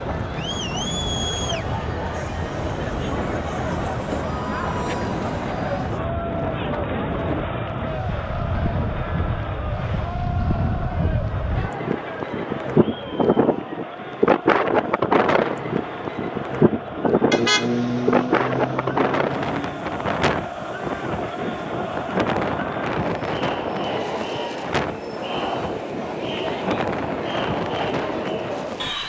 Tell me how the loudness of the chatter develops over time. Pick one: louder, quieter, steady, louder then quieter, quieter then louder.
quieter then louder.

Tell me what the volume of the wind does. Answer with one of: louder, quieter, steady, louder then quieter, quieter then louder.
louder then quieter.